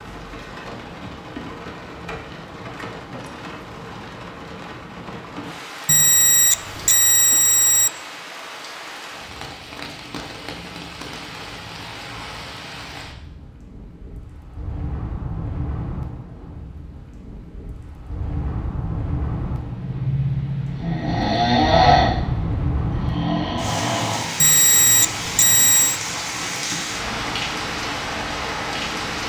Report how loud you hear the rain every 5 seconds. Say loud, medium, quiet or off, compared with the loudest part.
medium, medium, medium, medium, loud, loud.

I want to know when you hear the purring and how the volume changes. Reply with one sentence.
You can't hear the purring here.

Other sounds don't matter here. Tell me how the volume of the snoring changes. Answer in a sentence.
The loudness of the snoring goes up, then down.